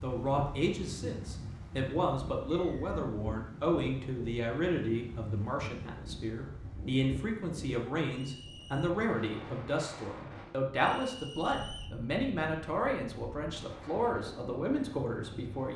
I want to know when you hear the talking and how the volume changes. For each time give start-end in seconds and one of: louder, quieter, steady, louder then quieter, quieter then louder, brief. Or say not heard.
0.0-15.7 steady.